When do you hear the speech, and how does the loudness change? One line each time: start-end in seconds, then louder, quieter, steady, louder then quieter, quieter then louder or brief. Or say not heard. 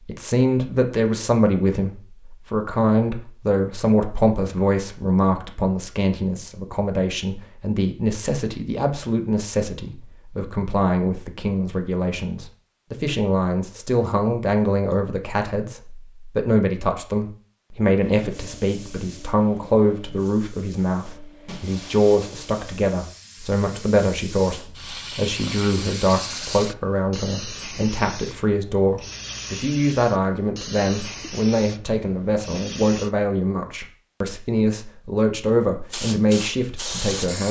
0.1-37.4 steady.